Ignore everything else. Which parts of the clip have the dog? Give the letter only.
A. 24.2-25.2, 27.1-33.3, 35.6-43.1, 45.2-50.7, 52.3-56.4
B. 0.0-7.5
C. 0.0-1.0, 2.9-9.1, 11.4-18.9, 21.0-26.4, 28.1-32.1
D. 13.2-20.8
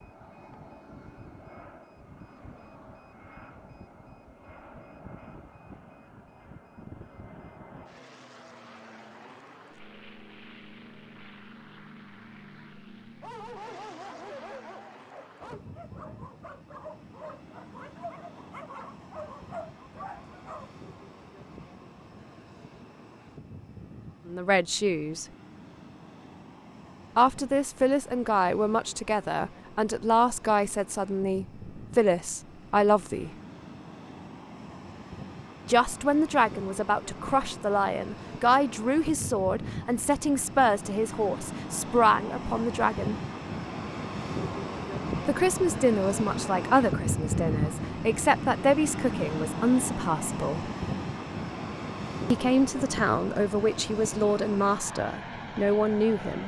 D.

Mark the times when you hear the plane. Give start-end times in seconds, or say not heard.
0.0-56.4.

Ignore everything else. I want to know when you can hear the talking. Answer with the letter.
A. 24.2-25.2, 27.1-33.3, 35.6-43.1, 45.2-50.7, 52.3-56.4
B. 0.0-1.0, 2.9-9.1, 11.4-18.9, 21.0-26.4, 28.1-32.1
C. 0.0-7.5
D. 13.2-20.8
A.